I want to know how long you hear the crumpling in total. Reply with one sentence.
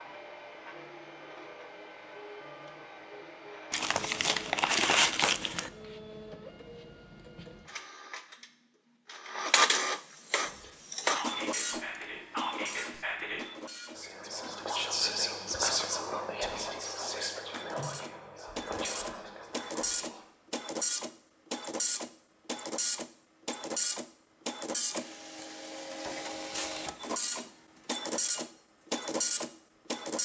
You can hear the crumpling for 2 seconds altogether.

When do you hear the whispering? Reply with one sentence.
The whispering can be heard from 10.4 to 20.2 s.